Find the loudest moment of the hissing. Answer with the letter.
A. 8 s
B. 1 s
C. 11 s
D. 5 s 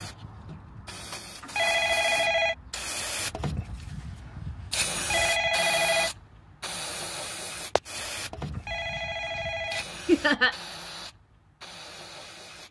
D.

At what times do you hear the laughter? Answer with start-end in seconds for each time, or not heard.
10.1-10.6.